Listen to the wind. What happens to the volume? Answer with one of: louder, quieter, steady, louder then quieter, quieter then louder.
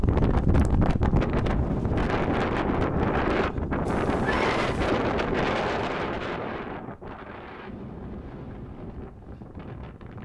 quieter.